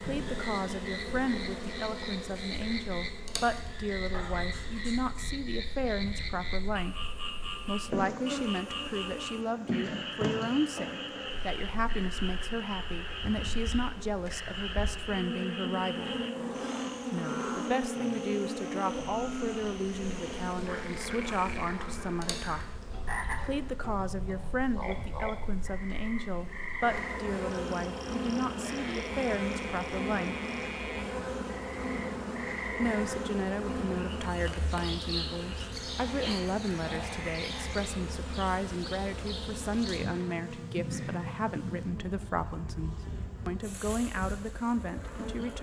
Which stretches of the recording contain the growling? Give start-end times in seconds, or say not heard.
4.1-5.2, 16.1-17.7, 36.0-37.1.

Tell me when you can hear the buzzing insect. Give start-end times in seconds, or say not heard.
0.0-45.5.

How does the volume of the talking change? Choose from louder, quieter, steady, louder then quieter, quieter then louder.
steady.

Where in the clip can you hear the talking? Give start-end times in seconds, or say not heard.
0.0-7.0, 7.7-16.1, 17.1-22.8, 23.4-30.4, 32.8-45.5.